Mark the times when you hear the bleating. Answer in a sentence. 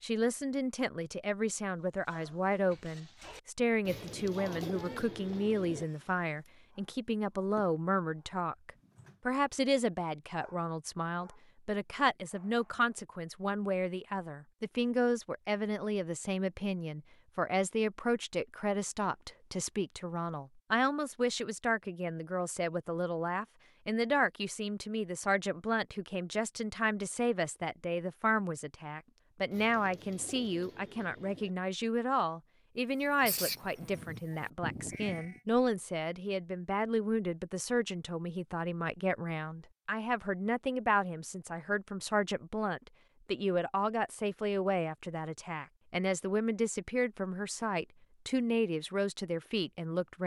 The bleating can be heard from 33.0 to 35.4 s.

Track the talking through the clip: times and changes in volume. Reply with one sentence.
You can hear the talking from 0.0 to 50.2 s, at a steady volume.